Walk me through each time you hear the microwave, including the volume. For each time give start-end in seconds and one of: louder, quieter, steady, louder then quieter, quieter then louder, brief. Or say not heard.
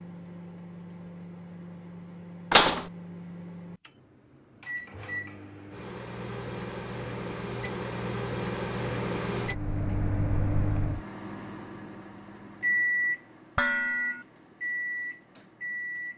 0.0-16.1 louder.